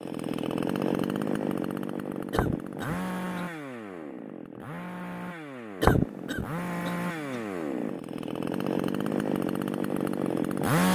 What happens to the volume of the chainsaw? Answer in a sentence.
The loudness of the chainsaw goes down, then up.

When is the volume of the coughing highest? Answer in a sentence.
The loudest moment of the coughing is at 6 seconds.